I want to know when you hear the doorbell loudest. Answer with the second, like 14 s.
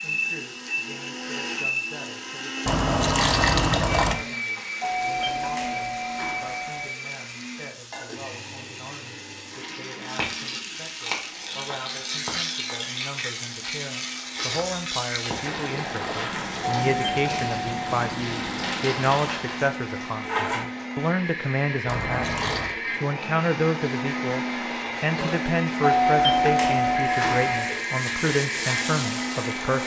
26 s.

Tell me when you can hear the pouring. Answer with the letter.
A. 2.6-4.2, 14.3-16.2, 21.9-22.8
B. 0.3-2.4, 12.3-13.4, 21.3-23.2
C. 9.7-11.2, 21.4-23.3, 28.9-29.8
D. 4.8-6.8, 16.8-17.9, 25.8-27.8
A.